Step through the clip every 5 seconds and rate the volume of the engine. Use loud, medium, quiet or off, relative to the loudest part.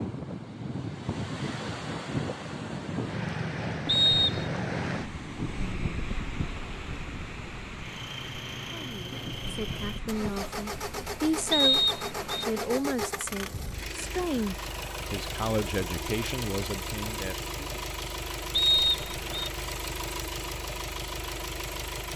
off, loud, loud, loud, loud.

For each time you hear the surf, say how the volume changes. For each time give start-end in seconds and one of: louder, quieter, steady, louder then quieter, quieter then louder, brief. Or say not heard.
0.0-12.8 quieter.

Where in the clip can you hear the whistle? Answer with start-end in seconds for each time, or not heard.
3.9-4.5, 11.5-12.4, 18.5-19.5.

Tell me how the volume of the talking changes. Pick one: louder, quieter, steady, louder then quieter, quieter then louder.
louder then quieter.